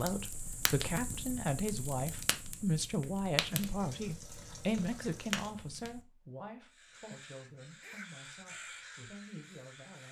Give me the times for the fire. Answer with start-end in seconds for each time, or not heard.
0.0-6.0.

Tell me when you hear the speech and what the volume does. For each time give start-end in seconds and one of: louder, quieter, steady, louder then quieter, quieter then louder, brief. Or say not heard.
0.0-10.0 quieter.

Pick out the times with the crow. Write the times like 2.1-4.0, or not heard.
6.7-10.0.